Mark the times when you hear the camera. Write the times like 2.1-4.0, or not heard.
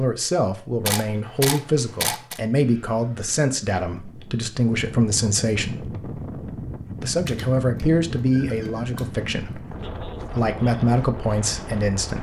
0.8-2.4, 7.2-9.1.